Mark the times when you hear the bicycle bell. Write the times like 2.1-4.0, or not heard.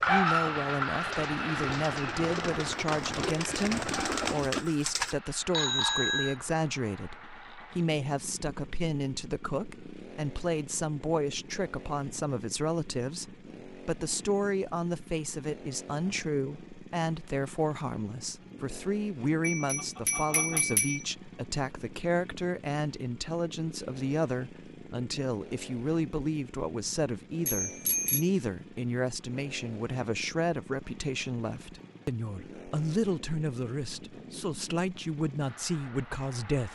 5.5-6.3, 19.4-21.1, 27.4-28.3.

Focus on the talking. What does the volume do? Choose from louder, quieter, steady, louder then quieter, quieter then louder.
steady.